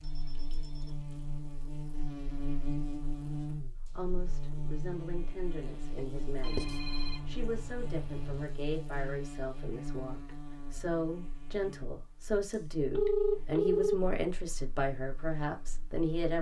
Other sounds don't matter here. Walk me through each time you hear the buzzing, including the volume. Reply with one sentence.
The buzzing can be heard from 0.0 to 16.1 s, getting quieter.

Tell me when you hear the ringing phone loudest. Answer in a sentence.
The volume of the ringing phone peaks at 13 seconds.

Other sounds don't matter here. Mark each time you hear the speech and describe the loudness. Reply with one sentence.
You can hear the speech from 3.9 to 16.3 s, getting louder.